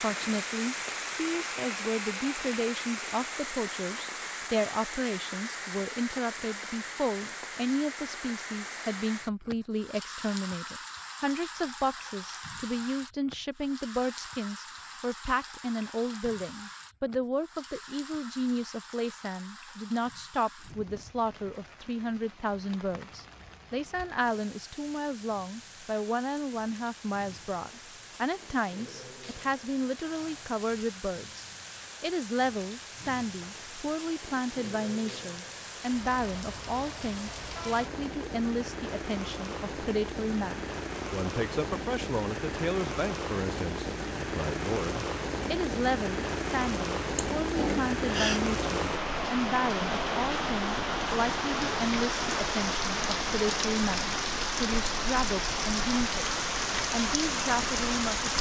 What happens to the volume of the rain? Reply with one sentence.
The volume of the rain goes down, then up.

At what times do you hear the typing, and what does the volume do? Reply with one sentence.
You can't hear the typing here.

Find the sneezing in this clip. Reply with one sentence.
You can hear the sneezing from 47.1 to 48.4 s.